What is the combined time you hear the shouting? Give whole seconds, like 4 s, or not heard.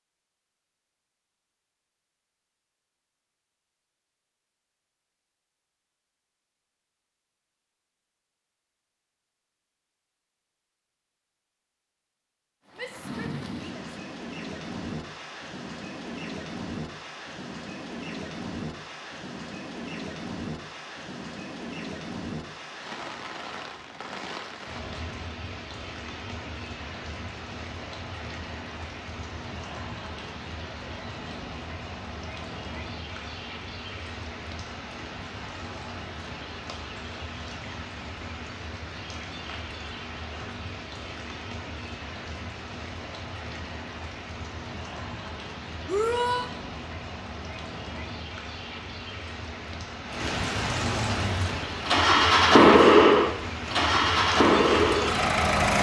2 s.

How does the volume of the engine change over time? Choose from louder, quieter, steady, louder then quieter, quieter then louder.
louder then quieter.